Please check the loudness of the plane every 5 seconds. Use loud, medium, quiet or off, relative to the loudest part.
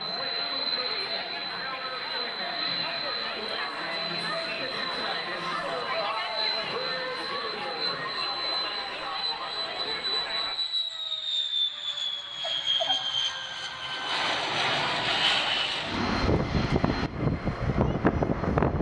medium, medium, loud, loud.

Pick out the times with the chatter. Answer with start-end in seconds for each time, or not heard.
0.0-10.6.